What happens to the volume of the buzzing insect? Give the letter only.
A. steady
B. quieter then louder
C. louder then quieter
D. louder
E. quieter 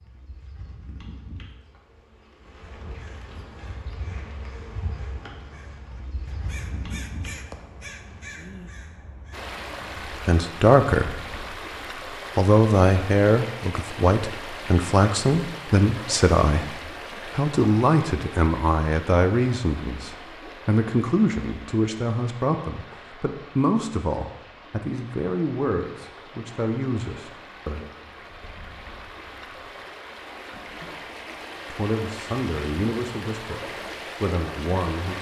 D.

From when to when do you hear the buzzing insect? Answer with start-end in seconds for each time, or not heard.
0.0-8.2.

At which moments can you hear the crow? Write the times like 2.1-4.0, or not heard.
2.6-10.2.